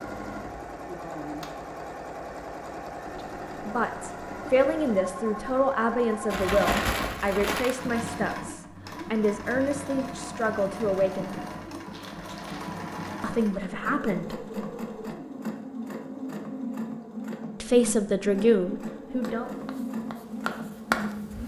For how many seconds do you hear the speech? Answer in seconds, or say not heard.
12 s.